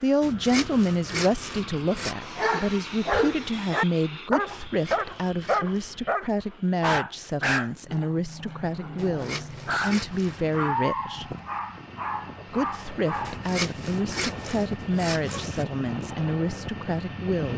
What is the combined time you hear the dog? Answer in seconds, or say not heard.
11 s.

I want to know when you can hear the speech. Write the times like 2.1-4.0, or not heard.
0.0-11.3, 12.5-17.5.